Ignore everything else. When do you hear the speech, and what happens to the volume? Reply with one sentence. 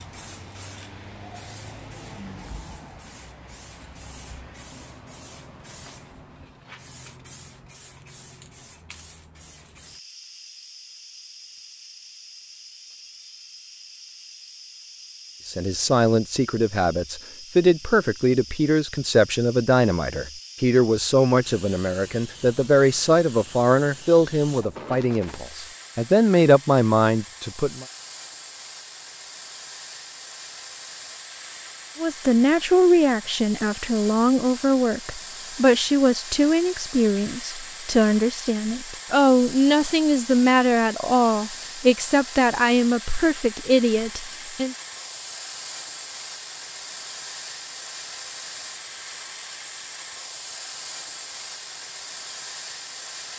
The speech can be heard from 15.4 to 27.9 s, at a steady volume; and from 31.9 to 44.8 s, at a steady volume.